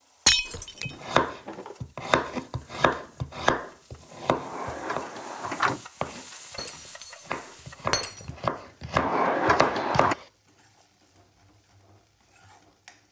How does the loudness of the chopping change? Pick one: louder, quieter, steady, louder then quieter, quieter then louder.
quieter then louder.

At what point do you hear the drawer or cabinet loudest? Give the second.
9 s.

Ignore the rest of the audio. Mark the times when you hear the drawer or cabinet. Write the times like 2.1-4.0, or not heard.
0.8-1.8, 4.3-5.8, 8.9-10.2.